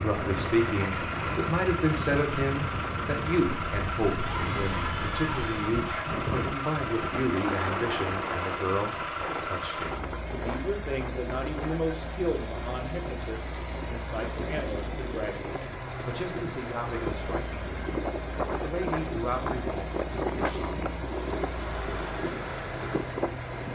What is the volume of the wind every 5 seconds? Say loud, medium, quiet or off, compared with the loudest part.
loud, loud, medium, loud, loud.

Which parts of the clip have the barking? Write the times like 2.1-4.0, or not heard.
4.2-6.0.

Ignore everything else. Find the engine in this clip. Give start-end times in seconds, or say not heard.
0.0-23.7.